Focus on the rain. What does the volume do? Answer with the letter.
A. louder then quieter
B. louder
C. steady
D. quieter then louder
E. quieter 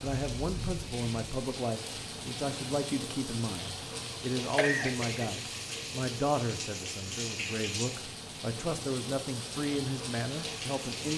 C.